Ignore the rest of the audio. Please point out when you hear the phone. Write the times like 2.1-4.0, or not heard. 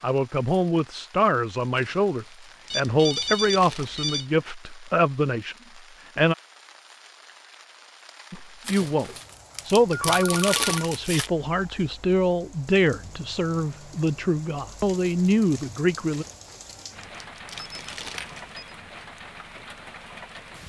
2.7-4.2, 9.9-10.9, 17.6-18.6.